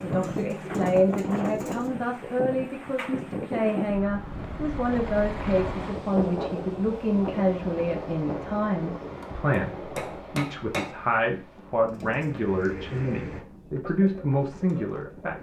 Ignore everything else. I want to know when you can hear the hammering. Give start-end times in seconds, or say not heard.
9.9-10.9.